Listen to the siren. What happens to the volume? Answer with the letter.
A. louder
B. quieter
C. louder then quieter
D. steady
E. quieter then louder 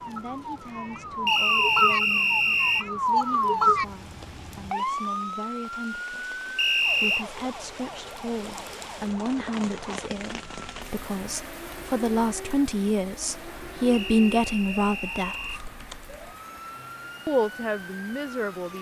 B.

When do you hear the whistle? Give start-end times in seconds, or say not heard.
1.2-2.9, 6.5-7.2, 13.9-15.6.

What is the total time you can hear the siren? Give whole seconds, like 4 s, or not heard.
19 s.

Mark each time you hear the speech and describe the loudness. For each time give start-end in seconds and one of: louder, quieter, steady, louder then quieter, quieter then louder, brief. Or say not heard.
0.0-15.6 louder
17.2-18.7 brief.